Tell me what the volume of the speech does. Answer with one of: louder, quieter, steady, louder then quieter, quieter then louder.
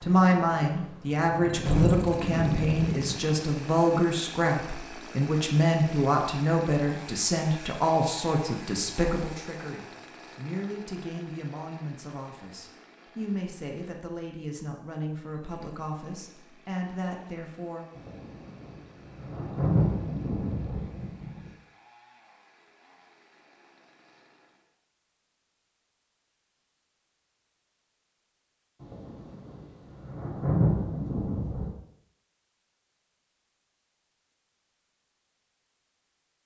quieter.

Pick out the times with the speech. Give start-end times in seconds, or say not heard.
0.0-17.9.